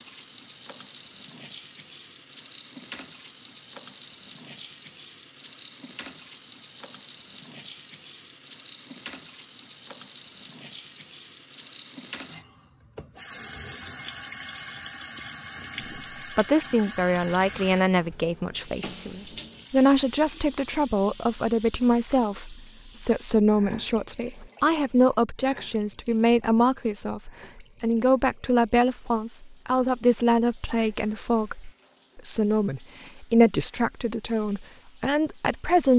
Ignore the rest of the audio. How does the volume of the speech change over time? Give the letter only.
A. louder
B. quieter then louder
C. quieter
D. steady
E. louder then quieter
D.